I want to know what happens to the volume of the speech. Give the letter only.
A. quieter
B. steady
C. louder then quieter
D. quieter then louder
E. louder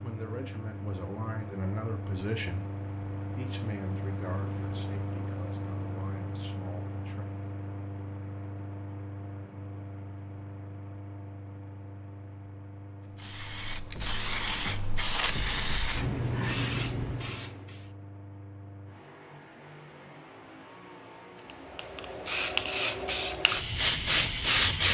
A.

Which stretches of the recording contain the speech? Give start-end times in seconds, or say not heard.
0.0-7.2.